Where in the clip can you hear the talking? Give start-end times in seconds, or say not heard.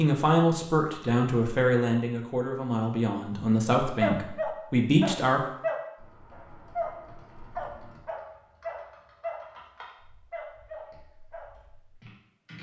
0.0-5.4.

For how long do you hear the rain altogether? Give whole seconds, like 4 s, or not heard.
not heard.